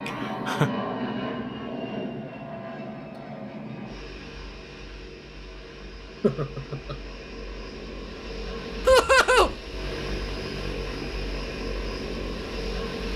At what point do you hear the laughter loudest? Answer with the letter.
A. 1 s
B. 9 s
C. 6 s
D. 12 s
B.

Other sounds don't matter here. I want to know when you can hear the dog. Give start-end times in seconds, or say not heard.
not heard.